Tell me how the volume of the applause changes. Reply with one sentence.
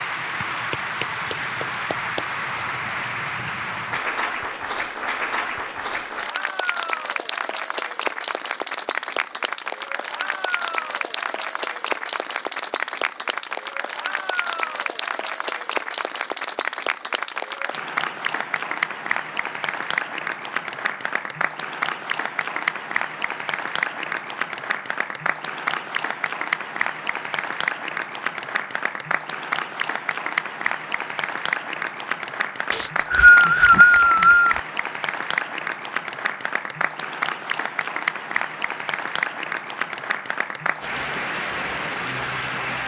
The volume of the applause stays about the same.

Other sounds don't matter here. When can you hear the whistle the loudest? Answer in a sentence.
The volume of the whistle peaks at 33 seconds.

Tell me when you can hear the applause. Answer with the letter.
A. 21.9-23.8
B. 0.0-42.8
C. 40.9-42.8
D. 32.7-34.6
B.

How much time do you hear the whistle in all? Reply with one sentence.
You can hear the whistle for 2 seconds altogether.